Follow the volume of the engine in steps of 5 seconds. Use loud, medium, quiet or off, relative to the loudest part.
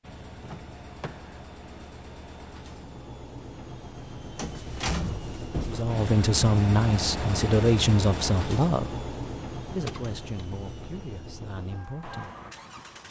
medium, loud, medium.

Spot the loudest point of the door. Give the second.
5 s.